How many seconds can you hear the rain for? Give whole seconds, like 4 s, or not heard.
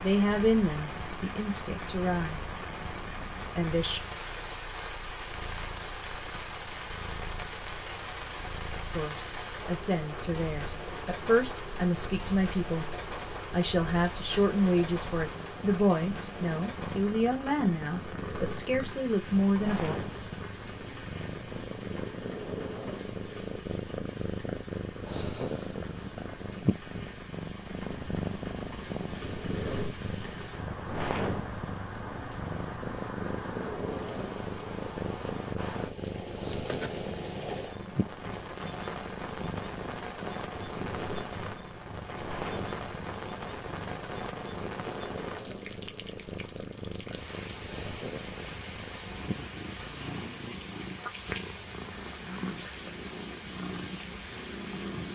55 s.